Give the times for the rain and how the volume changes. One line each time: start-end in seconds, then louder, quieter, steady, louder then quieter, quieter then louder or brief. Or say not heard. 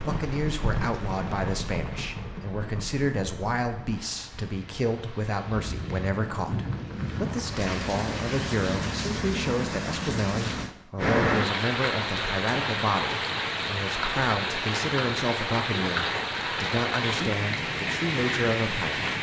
0.0-19.1 louder.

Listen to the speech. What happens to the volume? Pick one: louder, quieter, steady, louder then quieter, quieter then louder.
steady.